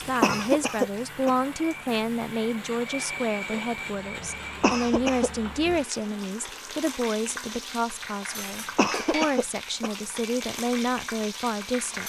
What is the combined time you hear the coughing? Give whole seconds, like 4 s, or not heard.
3 s.